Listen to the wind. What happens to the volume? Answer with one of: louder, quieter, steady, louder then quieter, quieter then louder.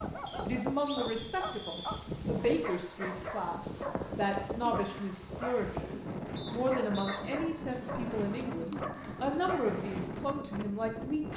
steady.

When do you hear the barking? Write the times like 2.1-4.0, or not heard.
0.0-10.1.